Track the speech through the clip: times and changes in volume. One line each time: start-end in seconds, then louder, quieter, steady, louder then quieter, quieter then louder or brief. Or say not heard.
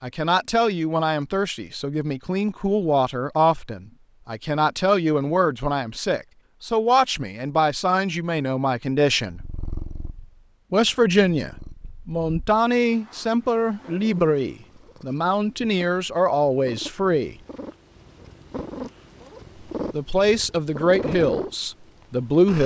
0.0-9.4 steady
10.7-17.4 steady
19.9-22.6 brief.